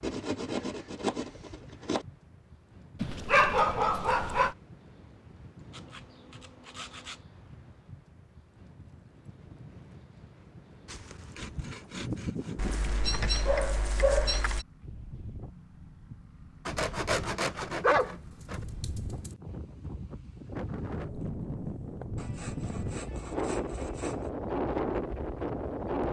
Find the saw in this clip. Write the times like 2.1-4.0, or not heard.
0.0-2.0, 5.7-7.2, 10.8-13.4, 16.6-18.6, 22.1-24.3.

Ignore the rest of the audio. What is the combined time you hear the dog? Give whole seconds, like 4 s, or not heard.
5 s.